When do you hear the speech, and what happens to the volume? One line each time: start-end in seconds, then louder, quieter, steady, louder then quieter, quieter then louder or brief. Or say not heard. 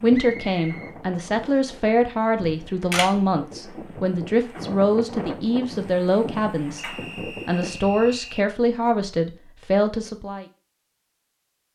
0.0-10.4 steady.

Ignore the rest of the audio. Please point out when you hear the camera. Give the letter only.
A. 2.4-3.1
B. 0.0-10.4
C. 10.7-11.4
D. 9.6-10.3
A.